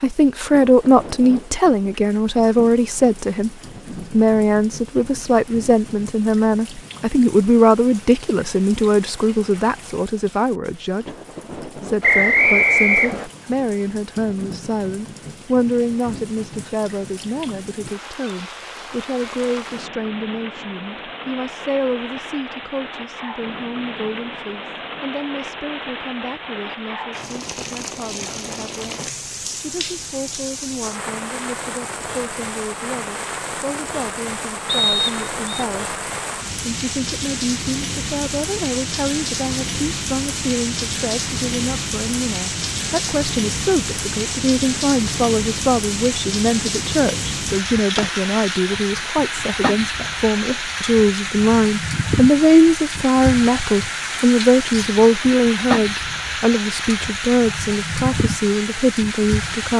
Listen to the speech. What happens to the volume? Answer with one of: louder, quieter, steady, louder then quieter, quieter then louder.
quieter then louder.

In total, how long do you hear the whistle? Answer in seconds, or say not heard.
2 s.